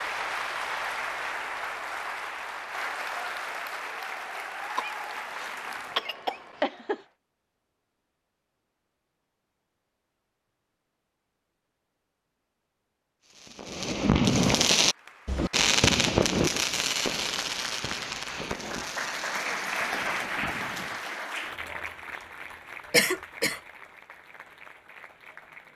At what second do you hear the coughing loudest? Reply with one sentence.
The loudest moment of the coughing is at 23 seconds.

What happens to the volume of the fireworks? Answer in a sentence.
The volume of the fireworks goes down.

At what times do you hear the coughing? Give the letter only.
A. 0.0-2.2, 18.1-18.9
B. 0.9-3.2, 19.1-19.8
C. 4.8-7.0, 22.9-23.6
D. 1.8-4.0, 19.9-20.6
C.